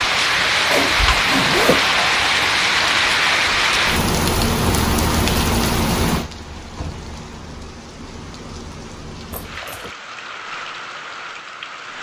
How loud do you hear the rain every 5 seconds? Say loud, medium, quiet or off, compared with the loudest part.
loud, medium, quiet.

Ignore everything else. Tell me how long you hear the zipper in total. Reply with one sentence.
The zipper can be heard for 2 seconds in total.